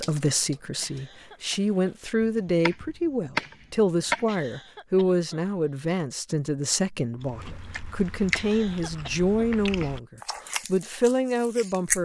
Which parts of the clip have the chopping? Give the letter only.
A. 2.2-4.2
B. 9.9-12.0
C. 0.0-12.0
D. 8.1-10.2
A.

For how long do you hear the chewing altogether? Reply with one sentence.
The chewing can be heard for 5 seconds in total.